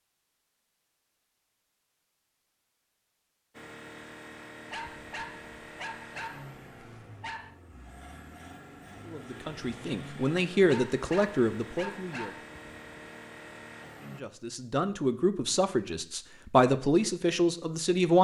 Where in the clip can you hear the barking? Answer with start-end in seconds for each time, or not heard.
4.7-7.5, 10.7-12.5.